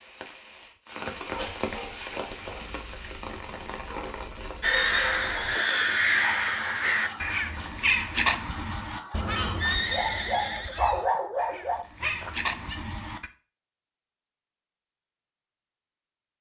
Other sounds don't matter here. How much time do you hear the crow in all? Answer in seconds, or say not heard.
9 s.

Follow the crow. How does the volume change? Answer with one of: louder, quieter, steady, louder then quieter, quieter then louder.
quieter then louder.